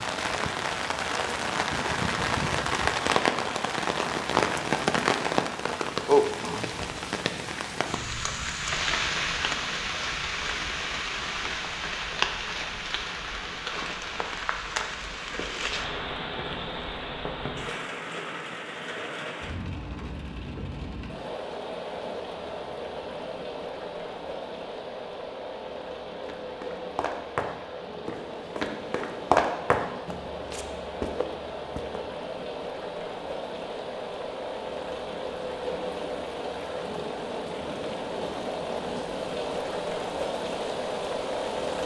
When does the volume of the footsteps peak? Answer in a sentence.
The loudest moment of the footsteps is at 29 seconds.